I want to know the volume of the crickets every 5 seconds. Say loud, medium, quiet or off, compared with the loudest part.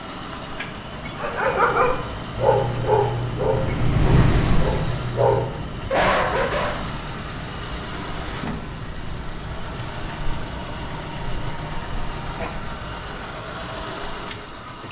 loud, medium, medium.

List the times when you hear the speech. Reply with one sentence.
You can't hear the speech here.